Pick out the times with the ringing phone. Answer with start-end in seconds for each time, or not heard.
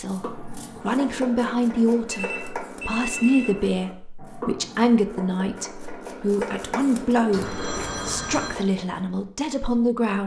2.1-3.5, 7.3-8.6.